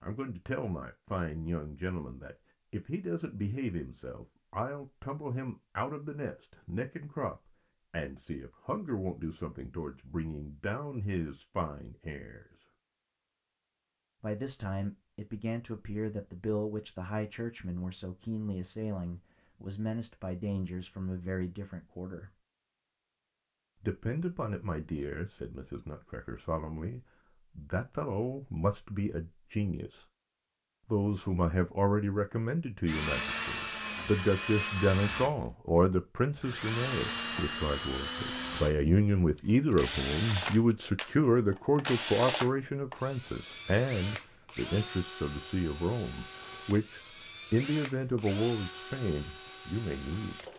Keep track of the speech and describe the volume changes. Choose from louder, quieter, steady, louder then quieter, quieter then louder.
louder.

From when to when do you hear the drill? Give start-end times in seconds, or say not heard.
32.9-50.5.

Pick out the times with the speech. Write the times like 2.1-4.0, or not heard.
0.0-12.4, 14.2-22.3, 23.8-30.1, 30.9-50.4.